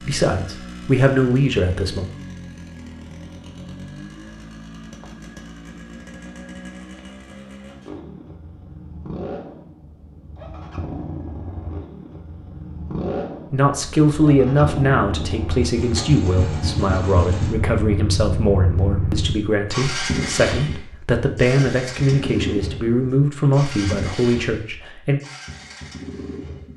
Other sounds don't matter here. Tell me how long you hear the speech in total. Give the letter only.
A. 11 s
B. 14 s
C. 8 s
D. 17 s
B.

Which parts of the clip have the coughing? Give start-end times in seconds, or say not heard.
not heard.